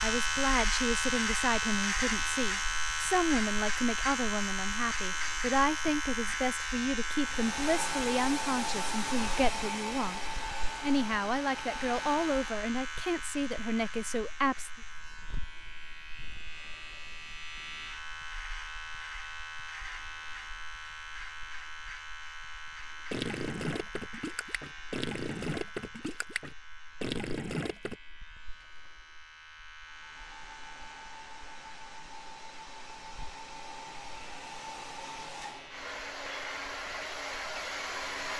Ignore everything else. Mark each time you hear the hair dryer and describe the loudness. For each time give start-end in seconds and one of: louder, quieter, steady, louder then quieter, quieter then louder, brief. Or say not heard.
7.2-12.7 quieter
29.8-38.3 louder.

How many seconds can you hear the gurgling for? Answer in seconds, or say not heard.
5 s.